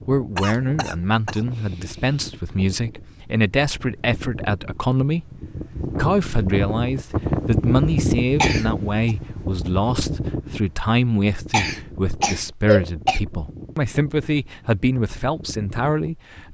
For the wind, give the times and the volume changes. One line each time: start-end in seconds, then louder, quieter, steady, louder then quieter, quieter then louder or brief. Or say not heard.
0.0-16.4 louder then quieter.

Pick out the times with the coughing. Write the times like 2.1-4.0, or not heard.
0.3-1.4, 8.4-9.1, 11.5-13.2.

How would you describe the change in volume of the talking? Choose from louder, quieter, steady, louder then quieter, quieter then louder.
steady.